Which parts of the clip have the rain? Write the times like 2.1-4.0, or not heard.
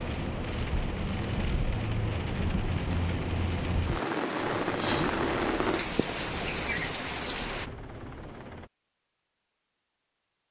0.0-7.7.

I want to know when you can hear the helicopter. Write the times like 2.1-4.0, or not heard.
4.5-8.7.